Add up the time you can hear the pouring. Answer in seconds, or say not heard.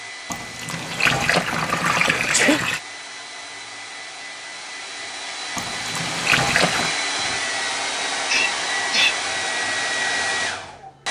4 s.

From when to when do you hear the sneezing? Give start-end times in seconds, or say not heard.
1.9-2.6, 8.2-9.2.